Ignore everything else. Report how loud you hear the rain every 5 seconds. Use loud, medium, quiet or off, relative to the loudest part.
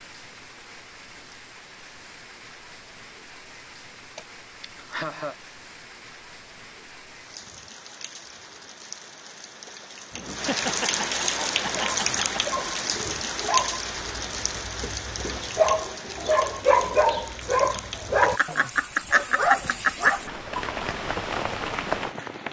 quiet, quiet, loud, medium, loud.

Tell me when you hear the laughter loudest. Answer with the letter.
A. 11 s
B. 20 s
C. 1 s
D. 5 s
B.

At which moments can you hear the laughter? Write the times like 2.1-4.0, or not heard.
4.2-5.3, 10.1-12.4, 18.2-20.3.